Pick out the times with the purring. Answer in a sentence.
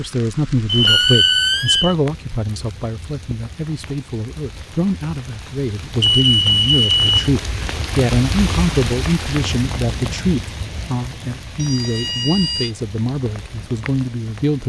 You can't hear the purring here.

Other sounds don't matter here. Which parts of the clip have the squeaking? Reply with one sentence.
The squeaking can be heard from 0.8 to 1.9 s.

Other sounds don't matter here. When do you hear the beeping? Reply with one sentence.
The beeping can be heard from 0.7 to 1.9 s, from 6.0 to 7.1 s and from 11.6 to 12.8 s.